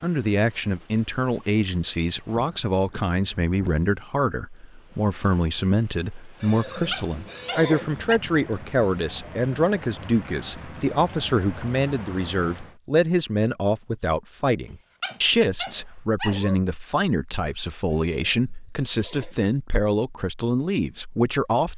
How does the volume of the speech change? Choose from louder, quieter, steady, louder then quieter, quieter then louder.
steady.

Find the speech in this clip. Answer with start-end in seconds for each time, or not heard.
0.0-21.7.